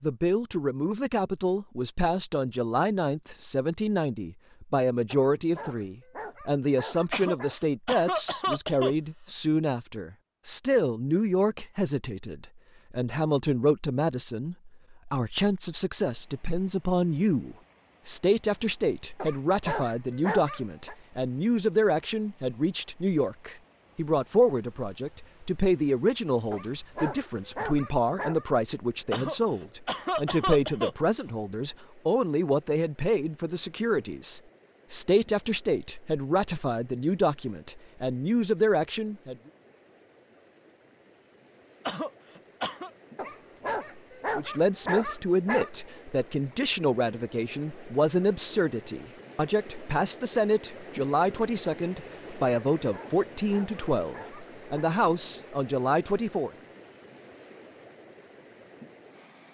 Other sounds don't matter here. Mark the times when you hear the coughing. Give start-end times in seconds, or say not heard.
7.1-8.9, 29.1-30.9, 41.9-42.9.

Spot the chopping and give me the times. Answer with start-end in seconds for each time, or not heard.
not heard.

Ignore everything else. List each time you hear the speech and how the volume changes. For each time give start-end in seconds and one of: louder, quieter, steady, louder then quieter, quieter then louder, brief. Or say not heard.
0.0-39.4 steady
44.4-56.5 steady.